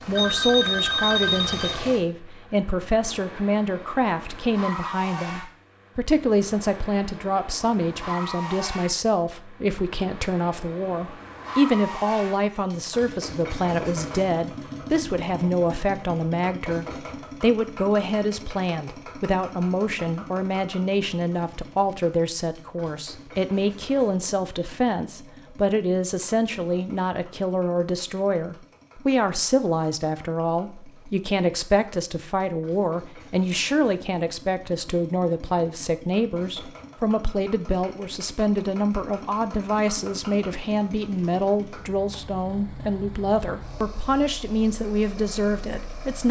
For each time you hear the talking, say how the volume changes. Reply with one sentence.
The talking can be heard from 0.1 to 46.2 s, at a steady volume.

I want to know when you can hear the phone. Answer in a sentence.
The phone can be heard from 0.1 to 1.8 s.